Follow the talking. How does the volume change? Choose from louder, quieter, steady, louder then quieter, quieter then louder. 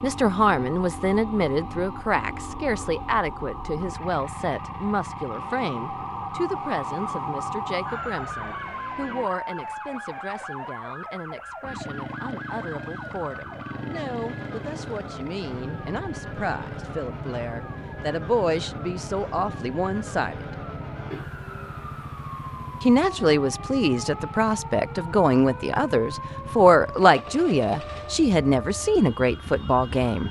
quieter then louder.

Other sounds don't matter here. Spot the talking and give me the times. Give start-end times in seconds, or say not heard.
0.0-20.4, 22.8-30.2.